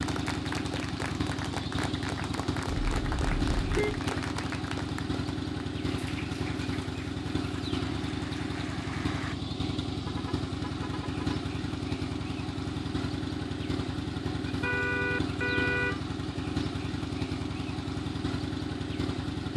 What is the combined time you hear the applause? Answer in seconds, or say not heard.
9 s.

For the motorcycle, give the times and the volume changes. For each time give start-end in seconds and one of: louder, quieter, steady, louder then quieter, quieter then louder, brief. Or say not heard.
0.0-19.5 steady.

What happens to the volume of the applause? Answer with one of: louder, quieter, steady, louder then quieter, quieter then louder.
quieter.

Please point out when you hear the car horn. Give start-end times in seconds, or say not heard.
2.9-4.0, 9.9-11.4, 14.6-16.0.